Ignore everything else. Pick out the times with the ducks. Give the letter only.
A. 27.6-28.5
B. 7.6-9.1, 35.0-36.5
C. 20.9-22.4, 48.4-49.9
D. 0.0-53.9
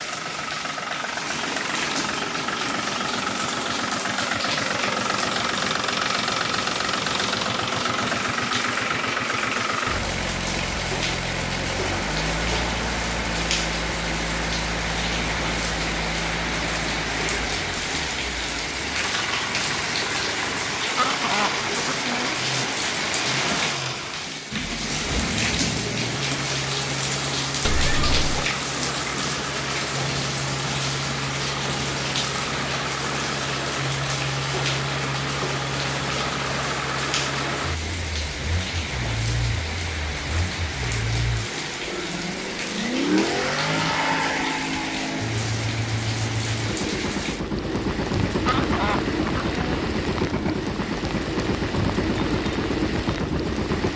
C.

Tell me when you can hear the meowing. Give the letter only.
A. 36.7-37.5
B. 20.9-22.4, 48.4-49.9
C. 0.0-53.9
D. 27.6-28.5
D.